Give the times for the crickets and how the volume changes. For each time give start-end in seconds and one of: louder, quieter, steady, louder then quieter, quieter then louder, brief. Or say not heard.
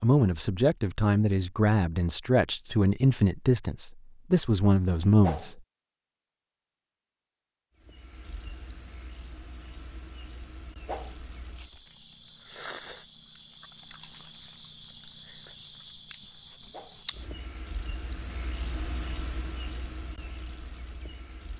7.8-21.5 louder.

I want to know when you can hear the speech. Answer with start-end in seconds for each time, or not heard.
0.0-5.6.